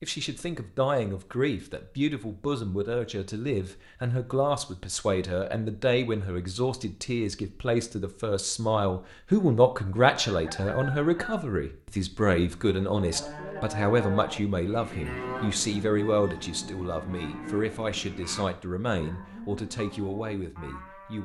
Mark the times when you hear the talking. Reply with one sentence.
The talking can be heard from 0.0 to 21.2 s.